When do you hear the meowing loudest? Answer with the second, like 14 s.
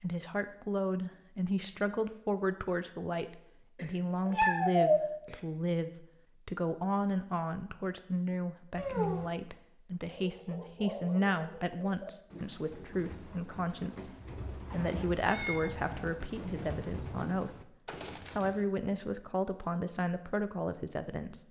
5 s.